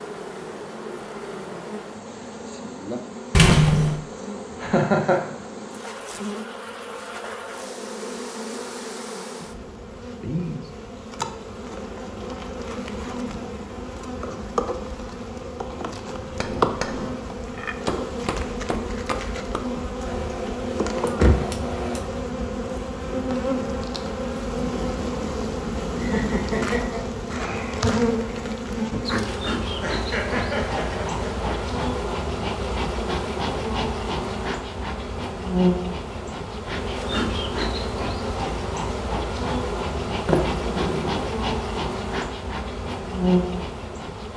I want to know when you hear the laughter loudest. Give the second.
5 s.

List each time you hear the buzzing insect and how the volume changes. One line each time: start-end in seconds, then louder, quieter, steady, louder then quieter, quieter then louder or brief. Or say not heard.
0.0-44.3 louder.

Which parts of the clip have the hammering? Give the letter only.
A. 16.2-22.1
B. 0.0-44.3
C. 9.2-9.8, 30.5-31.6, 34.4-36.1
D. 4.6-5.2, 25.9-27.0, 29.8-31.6
A.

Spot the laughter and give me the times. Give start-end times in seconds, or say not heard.
4.6-5.2, 25.9-27.0, 29.8-31.6.